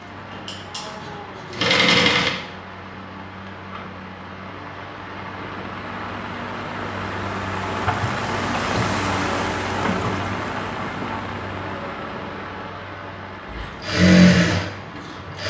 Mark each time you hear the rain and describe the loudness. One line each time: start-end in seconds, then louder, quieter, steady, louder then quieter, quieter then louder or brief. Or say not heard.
0.0-15.4 louder then quieter.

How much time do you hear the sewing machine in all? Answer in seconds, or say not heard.
4 s.